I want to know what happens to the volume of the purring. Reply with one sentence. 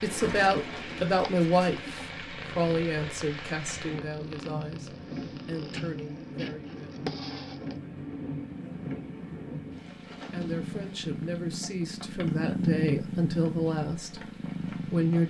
The loudness of the purring goes up.